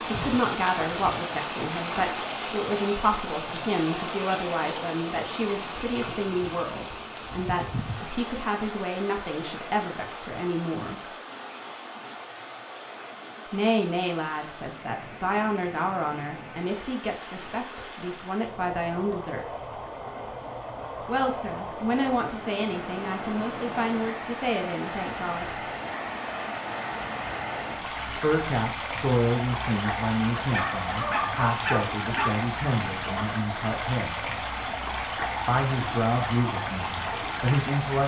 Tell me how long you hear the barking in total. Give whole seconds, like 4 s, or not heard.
2 s.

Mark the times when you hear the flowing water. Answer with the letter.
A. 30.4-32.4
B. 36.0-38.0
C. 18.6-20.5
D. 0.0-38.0
D.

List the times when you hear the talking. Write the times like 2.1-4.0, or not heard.
0.0-11.0, 13.5-19.6, 21.1-25.6, 28.1-34.2, 35.5-38.0.